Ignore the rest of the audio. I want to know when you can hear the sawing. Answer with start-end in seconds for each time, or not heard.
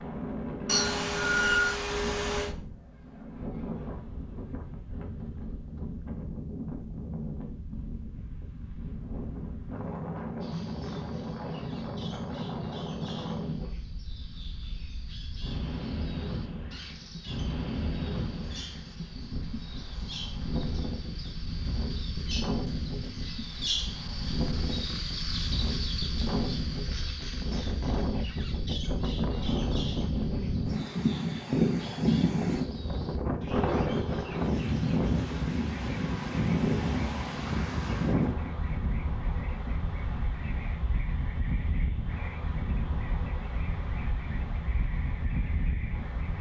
0.7-2.5.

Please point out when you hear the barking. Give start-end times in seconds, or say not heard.
not heard.